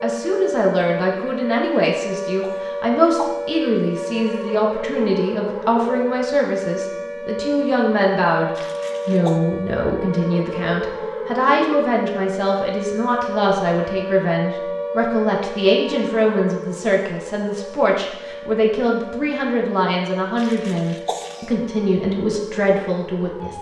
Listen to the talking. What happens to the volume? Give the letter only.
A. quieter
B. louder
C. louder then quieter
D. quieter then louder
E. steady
E.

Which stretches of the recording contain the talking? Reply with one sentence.
You can hear the talking from 0.0 to 23.5 s.